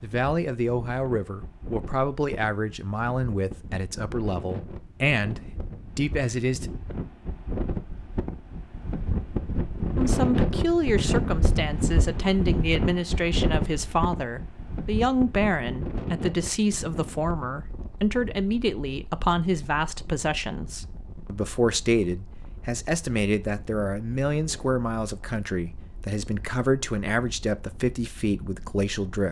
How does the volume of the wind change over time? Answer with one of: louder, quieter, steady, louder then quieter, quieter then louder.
louder then quieter.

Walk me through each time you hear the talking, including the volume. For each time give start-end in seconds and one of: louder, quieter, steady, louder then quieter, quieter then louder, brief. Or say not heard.
0.0-6.7 steady
9.9-29.2 steady.